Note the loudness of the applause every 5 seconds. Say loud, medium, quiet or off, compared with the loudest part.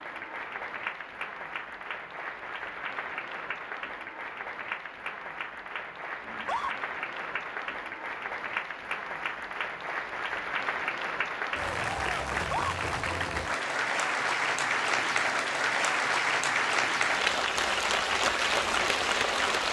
medium, medium, loud, loud.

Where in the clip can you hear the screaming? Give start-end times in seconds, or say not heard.
6.2-6.8, 12.3-12.8.